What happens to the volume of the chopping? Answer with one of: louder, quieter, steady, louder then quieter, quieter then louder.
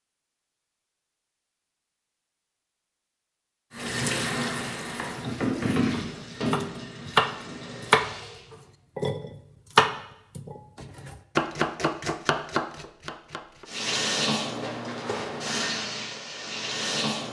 louder then quieter.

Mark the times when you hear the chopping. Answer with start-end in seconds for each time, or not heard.
4.8-13.7.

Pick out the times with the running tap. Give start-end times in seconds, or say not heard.
3.7-8.4, 13.7-17.2.